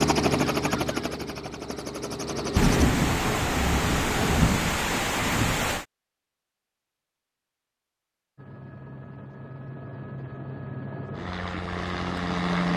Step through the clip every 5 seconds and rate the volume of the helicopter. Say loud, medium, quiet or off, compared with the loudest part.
loud, quiet, loud.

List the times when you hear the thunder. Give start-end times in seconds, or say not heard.
2.5-5.8.